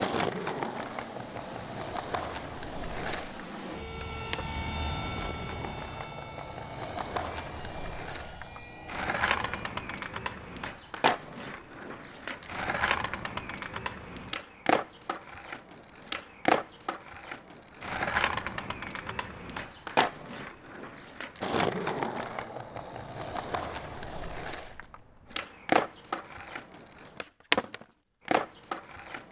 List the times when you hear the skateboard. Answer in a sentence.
The skateboard can be heard from 0.0 to 29.2 s.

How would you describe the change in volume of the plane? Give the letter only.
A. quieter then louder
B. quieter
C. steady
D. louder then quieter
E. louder
D.